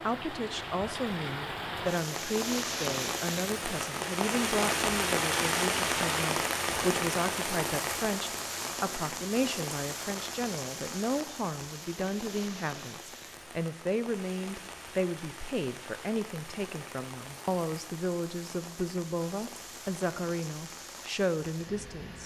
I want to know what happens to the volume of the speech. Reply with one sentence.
The volume of the speech stays about the same.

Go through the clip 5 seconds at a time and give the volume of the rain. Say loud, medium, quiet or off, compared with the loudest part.
loud, loud, medium, quiet, quiet.